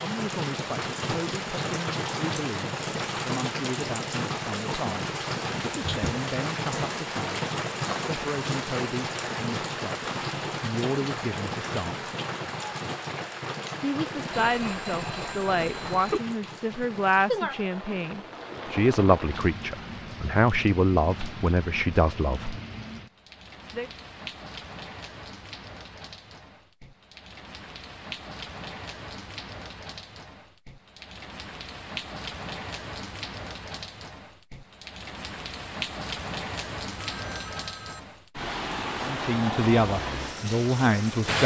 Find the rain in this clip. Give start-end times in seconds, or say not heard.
0.0-41.4.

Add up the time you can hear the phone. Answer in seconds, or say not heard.
3 s.